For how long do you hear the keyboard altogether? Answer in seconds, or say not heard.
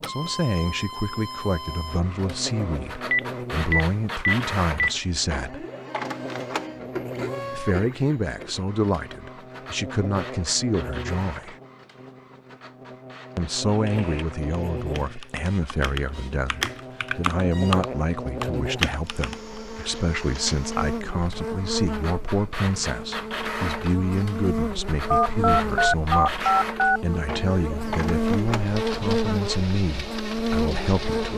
6 s.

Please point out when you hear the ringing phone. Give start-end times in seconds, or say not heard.
3.1-4.9, 25.1-26.9.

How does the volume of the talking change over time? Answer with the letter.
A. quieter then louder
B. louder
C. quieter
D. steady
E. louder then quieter
D.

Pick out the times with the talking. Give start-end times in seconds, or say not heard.
0.1-5.7, 7.5-11.6, 13.3-31.3.